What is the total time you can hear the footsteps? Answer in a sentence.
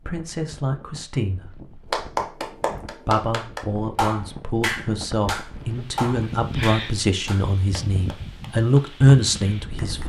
You can't hear the footsteps here.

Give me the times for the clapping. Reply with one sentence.
You can hear the clapping from 1.9 to 10.0 s.